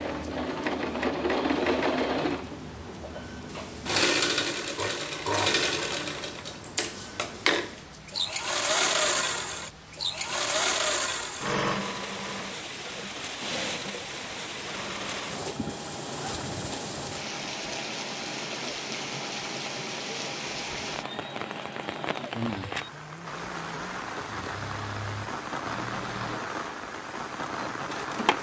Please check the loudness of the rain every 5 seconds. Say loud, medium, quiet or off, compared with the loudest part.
quiet, quiet, loud, loud, loud, loud.